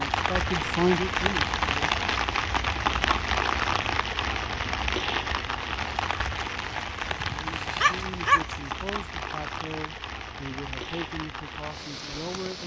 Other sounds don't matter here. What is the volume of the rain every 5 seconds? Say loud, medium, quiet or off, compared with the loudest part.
loud, medium, medium.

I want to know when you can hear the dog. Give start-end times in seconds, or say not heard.
7.2-8.6.